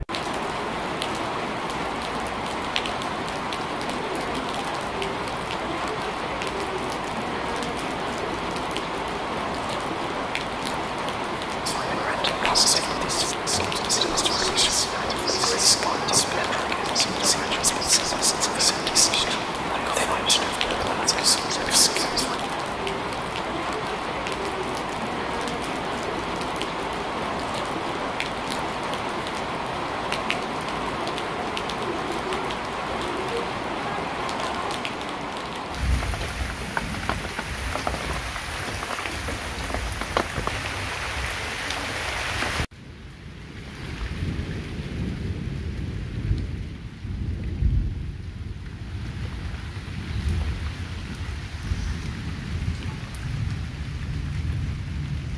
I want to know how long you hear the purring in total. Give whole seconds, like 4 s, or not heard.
not heard.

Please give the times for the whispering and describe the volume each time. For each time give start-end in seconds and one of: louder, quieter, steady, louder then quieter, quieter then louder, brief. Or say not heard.
11.7-22.4 steady.